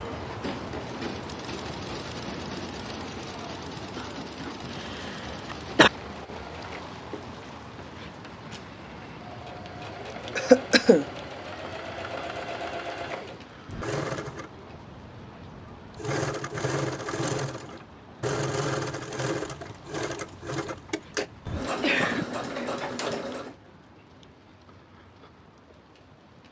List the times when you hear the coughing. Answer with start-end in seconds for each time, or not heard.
5.5-5.9, 10.3-11.1, 21.8-23.1.